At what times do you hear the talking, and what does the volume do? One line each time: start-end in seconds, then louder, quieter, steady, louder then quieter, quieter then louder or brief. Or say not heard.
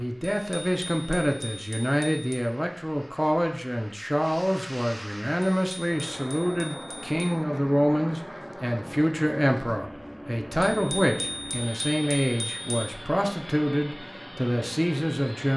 0.0-15.5 steady.